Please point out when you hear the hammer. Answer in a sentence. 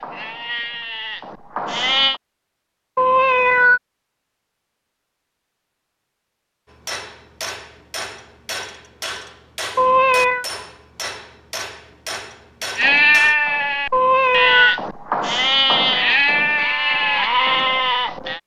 You can hear the hammer from 6.7 to 13.3 s.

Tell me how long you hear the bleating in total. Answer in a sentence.
You can hear the bleating for 8 seconds altogether.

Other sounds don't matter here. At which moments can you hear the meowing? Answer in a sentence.
The meowing can be heard from 3.0 to 3.8 s, from 9.8 to 10.4 s and from 13.9 to 14.8 s.